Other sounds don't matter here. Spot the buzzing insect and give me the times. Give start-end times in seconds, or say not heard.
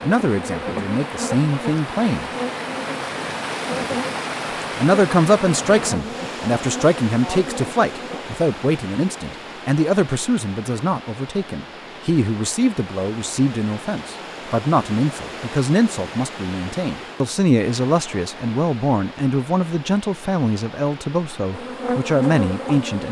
0.0-8.2, 21.5-23.0.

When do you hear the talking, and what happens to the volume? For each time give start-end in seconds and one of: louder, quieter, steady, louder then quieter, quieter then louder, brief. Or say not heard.
0.0-2.3 brief
4.8-23.0 steady.